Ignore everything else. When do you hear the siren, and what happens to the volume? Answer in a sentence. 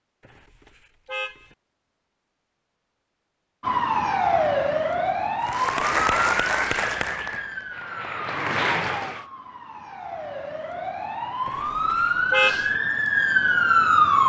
The siren can be heard from 3.6 to 14.2 s, getting quieter then louder.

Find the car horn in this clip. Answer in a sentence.
You can hear the car horn from 0.2 to 1.6 s and from 11.4 to 12.8 s.